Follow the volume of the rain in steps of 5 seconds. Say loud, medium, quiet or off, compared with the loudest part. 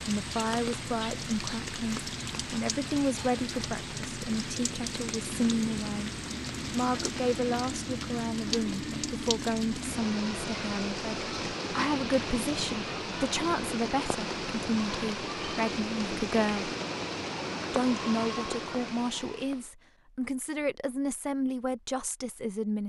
loud, loud, loud, loud, off.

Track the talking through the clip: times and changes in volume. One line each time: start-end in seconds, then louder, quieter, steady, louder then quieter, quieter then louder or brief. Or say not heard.
0.1-16.7 steady
17.7-22.8 steady.